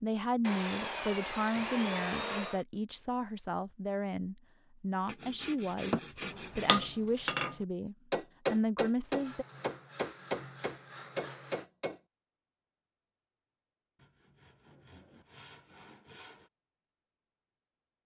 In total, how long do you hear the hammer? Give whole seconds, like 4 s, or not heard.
6 s.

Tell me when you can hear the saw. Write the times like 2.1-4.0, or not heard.
0.4-2.6, 5.0-6.7, 9.2-11.7, 13.9-16.5.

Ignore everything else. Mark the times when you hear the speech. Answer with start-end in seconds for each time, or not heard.
0.0-6.0, 6.5-9.4.